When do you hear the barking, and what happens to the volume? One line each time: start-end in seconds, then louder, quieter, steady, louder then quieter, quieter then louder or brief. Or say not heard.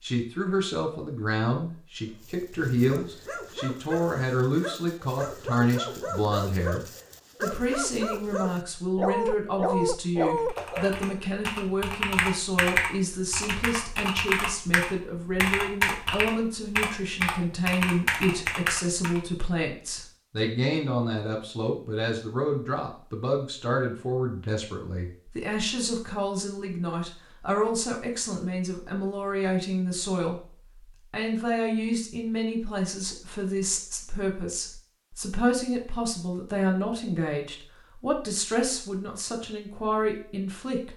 2.2-10.9 louder.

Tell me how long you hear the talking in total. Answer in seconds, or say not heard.
40 s.